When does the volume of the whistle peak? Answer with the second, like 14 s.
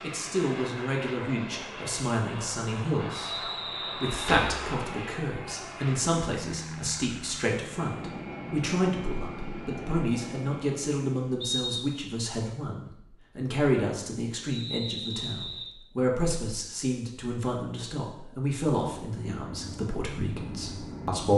12 s.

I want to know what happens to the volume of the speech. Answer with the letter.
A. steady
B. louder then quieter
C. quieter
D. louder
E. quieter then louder
A.